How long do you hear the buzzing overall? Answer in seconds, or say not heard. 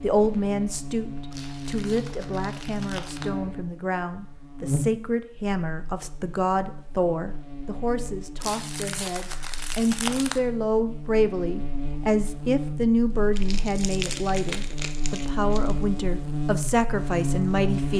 18 s.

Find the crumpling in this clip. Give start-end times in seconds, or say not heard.
1.3-3.3, 8.4-10.4, 13.3-15.8.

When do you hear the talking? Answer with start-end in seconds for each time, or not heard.
0.0-17.9.